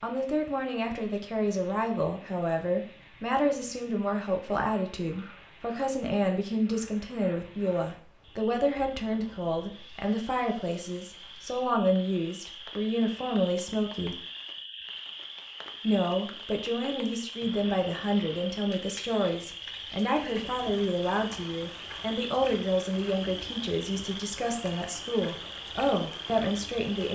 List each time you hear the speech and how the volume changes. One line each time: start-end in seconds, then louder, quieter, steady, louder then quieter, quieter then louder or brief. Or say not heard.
0.0-14.2 steady
15.8-27.1 steady.